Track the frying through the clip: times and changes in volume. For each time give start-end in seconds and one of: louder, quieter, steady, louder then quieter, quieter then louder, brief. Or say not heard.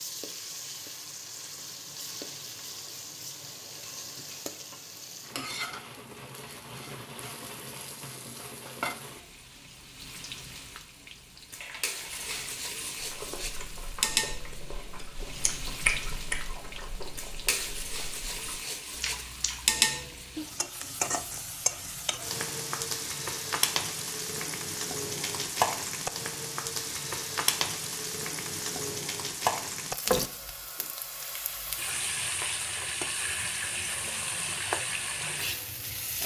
0.0-36.2 louder.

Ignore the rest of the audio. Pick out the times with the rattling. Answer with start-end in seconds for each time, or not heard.
11.6-12.4.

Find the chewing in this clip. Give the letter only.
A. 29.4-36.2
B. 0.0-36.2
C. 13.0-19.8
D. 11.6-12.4
C.